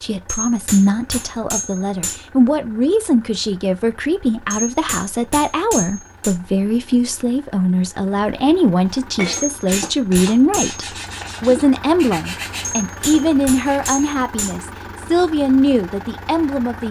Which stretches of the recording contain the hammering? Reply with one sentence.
The hammering can be heard from 0.2 to 2.2 s, from 4.5 to 6.3 s, from 9.3 to 10.8 s and from 12.6 to 14.6 s.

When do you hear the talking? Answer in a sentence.
The talking can be heard from 0.0 to 16.8 s.